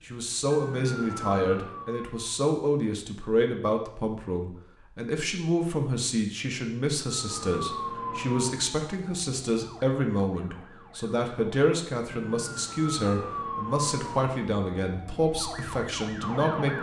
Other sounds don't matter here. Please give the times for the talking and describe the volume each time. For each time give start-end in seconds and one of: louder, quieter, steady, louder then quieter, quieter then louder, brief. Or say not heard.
0.1-16.7 steady.